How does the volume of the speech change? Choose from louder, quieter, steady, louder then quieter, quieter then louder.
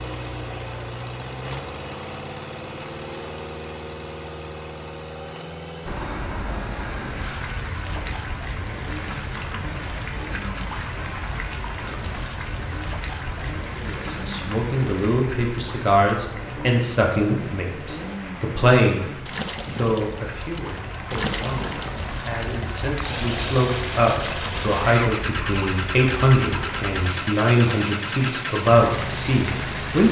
quieter then louder.